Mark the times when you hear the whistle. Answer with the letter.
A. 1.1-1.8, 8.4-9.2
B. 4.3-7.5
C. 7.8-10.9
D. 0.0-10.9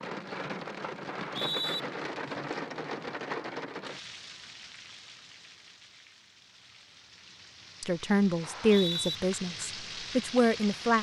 A.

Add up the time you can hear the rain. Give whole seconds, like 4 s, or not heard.
11 s.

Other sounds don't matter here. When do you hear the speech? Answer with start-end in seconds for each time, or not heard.
7.8-10.9.